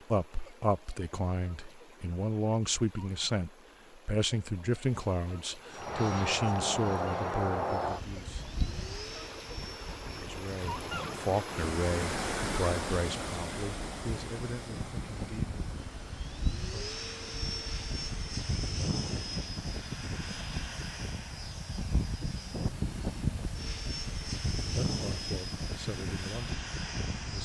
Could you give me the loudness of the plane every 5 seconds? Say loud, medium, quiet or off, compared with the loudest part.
off, loud, medium, loud, loud, loud.